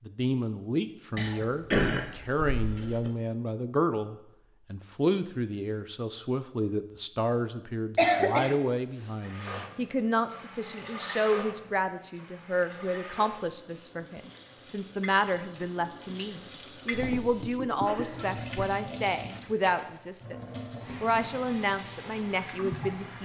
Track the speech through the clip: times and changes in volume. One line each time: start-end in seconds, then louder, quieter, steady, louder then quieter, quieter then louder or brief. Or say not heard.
0.1-23.2 steady.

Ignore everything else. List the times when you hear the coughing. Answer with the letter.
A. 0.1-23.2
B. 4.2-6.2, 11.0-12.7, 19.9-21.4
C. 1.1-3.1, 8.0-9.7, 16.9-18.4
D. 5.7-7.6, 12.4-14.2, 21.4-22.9
C.